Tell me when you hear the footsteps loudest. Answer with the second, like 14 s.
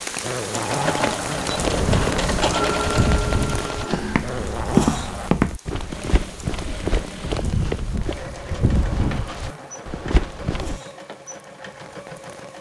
5 s.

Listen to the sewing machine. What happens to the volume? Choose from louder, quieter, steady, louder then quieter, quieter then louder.
quieter.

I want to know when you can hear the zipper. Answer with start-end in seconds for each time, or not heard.
0.2-2.2, 4.2-5.3, 8.4-10.1.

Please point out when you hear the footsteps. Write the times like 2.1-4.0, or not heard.
1.4-10.8.